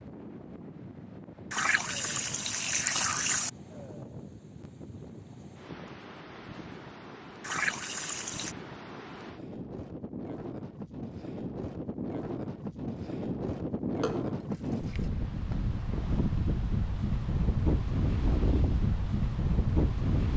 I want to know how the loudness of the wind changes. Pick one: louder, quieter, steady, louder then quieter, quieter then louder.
louder.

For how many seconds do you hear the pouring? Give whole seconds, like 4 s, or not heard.
4 s.